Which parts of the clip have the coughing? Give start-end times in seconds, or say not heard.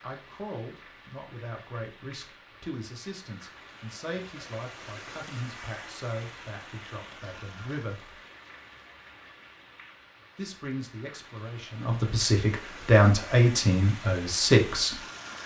not heard.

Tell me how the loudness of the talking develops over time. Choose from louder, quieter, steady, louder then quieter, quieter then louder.
louder.